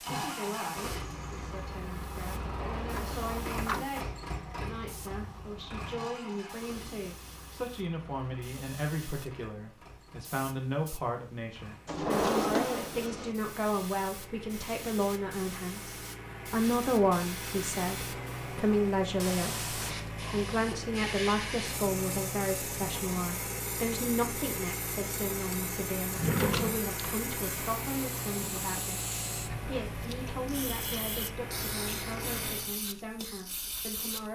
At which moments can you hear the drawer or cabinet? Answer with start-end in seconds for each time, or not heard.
2.5-3.9, 11.8-13.3, 26.1-26.9.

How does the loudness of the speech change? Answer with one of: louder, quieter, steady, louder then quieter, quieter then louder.
louder then quieter.